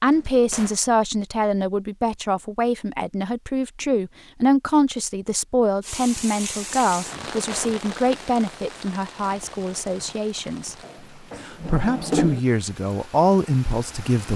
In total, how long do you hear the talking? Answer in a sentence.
The talking can be heard for 14 seconds in total.